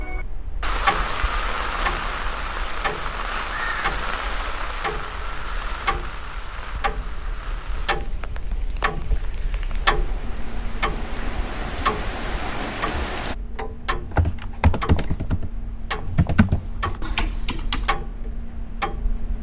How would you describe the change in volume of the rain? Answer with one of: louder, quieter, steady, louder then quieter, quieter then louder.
quieter then louder.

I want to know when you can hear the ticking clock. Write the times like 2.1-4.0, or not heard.
0.0-19.3.